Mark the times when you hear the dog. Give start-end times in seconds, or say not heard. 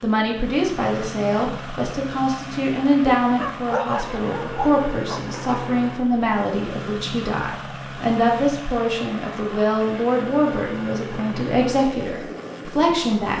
3.2-5.5.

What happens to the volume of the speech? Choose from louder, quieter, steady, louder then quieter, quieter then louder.
steady.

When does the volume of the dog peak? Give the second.
4 s.